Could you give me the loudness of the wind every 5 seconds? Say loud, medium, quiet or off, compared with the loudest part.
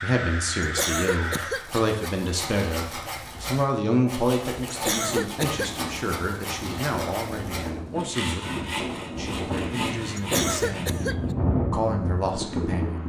off, medium, loud.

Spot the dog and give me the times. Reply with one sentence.
The dog can't be heard in this clip.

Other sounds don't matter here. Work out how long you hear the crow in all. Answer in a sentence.
The crow can be heard for 2 seconds in total.